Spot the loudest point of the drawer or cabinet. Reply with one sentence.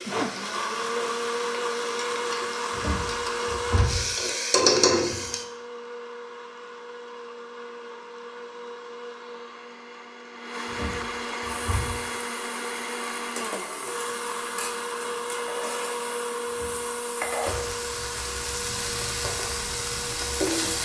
The loudest moment of the drawer or cabinet is at 4 seconds.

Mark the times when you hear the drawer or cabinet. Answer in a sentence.
You can hear the drawer or cabinet from 2.7 to 4.0 s, from 10.7 to 12.0 s and from 16.4 to 17.8 s.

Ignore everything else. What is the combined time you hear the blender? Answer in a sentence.
The blender can be heard for 21 seconds in total.